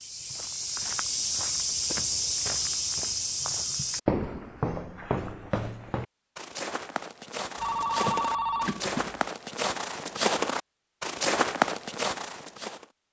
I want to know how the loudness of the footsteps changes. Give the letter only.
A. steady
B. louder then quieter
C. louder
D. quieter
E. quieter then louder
E.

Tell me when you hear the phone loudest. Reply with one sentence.
The loudest moment of the phone is at 8 seconds.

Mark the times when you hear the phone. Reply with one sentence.
You can hear the phone from 7.5 to 9.2 s.